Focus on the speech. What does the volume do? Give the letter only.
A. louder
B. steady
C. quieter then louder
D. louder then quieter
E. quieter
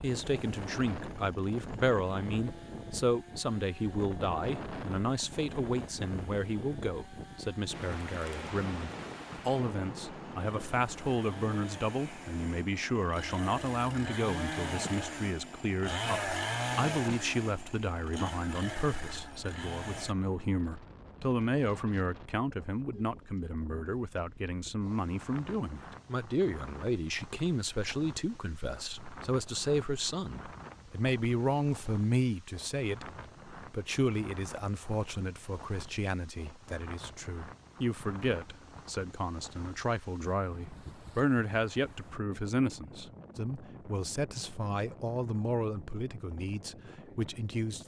B.